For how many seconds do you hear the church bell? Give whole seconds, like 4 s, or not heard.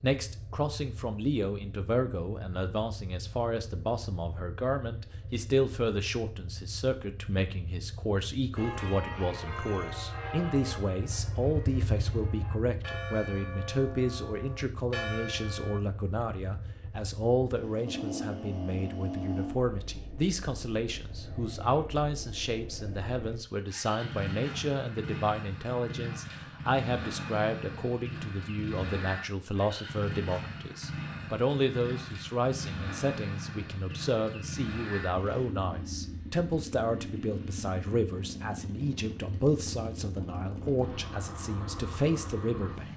7 s.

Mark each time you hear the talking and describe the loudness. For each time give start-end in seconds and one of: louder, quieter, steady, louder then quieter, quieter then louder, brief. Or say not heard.
0.0-42.9 steady.